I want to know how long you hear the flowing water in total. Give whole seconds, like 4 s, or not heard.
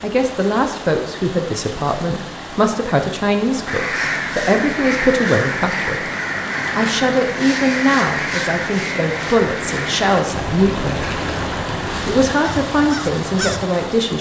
14 s.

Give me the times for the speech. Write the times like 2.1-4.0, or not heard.
0.0-6.0, 6.8-11.1, 12.0-14.1.